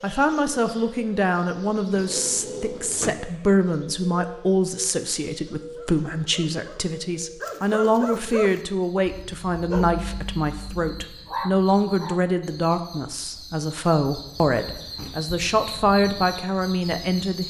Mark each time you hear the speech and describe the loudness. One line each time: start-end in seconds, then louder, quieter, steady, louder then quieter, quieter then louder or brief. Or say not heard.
0.0-17.4 steady.